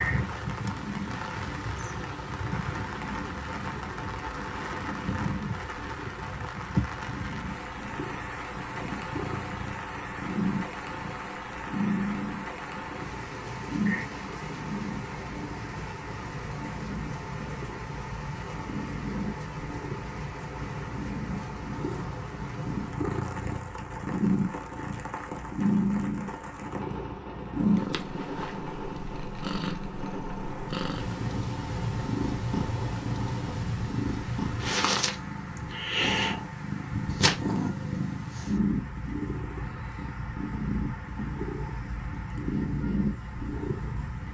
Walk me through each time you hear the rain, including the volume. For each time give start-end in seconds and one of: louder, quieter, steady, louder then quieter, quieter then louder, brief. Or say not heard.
0.0-44.2 quieter.